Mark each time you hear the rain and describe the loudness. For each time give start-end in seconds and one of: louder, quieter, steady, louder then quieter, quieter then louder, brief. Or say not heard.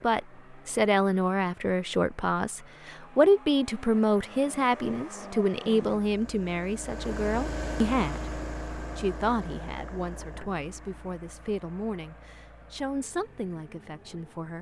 not heard.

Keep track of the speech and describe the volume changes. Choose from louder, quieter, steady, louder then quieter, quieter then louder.
quieter.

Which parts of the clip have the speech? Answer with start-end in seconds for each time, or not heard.
0.0-14.5.